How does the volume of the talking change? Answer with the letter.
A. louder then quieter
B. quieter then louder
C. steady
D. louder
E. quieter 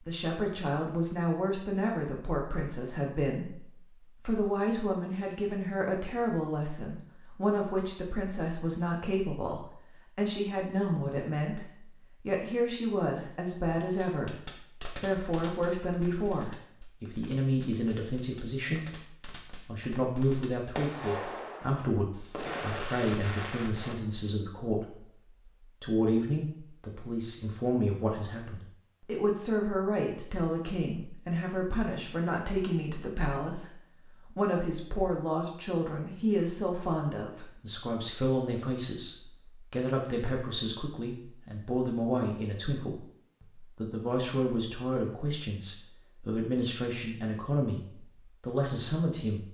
C.